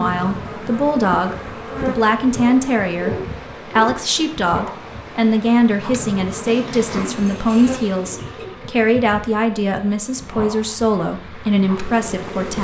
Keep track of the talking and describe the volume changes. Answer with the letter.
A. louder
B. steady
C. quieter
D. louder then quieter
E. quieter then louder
B.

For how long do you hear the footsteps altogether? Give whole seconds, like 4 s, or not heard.
not heard.